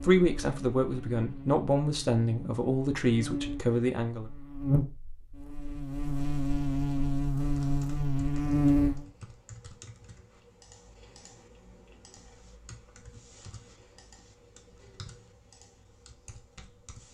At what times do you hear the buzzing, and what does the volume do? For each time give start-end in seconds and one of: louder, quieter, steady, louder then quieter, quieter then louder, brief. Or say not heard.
0.0-9.1 louder.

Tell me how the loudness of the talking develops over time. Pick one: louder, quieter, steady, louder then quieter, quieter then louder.
steady.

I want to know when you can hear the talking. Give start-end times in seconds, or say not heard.
0.0-4.3.